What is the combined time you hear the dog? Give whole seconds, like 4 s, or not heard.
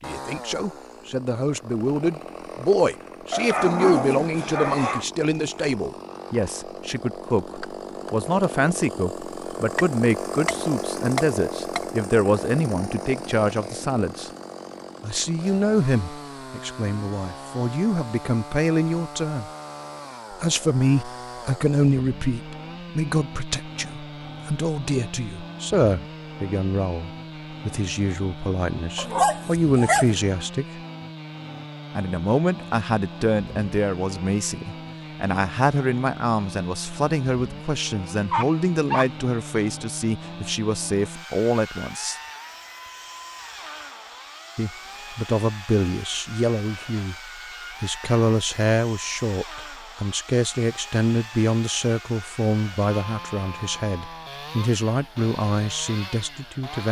4 s.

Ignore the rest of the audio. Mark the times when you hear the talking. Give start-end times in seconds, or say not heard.
0.0-14.3, 15.0-19.5, 20.3-30.6, 31.9-42.1, 44.5-47.1, 47.8-56.8.